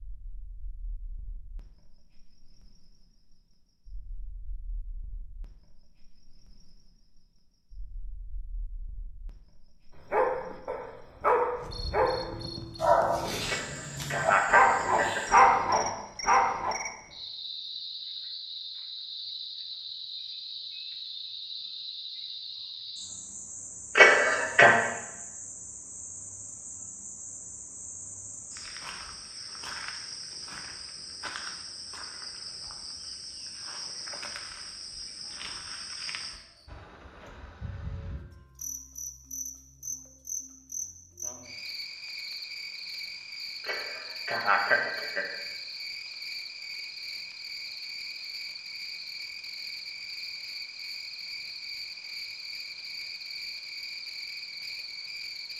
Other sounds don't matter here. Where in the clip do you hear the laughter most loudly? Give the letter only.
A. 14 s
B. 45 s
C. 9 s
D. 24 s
D.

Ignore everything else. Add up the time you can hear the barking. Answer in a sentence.
You can hear the barking for 7 seconds altogether.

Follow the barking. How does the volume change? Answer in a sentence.
The volume of the barking goes up.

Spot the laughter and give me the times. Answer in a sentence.
You can hear the laughter from 13.4 to 15.3 s, from 23.9 to 24.8 s and from 43.6 to 45.4 s.